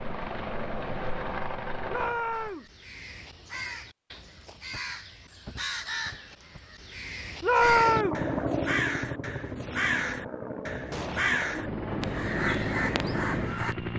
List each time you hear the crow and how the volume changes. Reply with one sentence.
The crow can be heard from 2.3 to 13.8 s, getting louder.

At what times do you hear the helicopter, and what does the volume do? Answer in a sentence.
You can hear the helicopter briefly from 0.0 to 2.5 s; and from 7.5 to 13.9 s, getting quieter then louder.